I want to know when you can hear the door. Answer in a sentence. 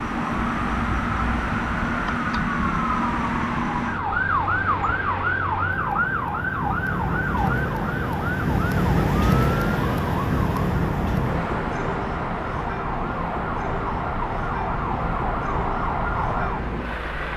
You can't hear the door here.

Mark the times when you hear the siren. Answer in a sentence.
You can hear the siren from 0.0 to 17.3 s.